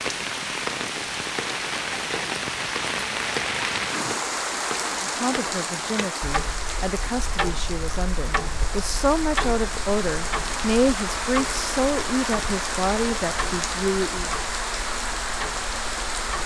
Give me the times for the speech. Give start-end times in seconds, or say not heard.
5.0-14.3.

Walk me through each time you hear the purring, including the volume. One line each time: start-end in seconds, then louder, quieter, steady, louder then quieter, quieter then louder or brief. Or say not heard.
not heard.